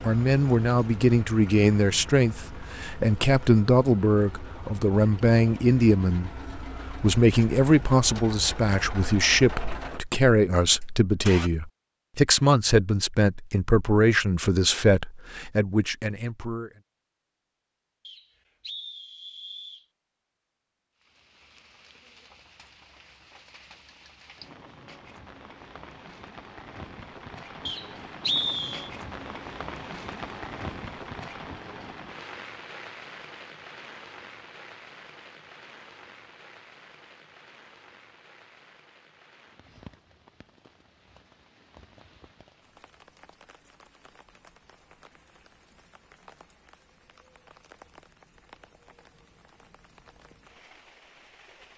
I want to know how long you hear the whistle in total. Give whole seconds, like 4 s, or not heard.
3 s.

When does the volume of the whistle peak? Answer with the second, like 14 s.
28 s.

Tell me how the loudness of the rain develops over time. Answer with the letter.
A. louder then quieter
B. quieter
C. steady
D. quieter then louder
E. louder
A.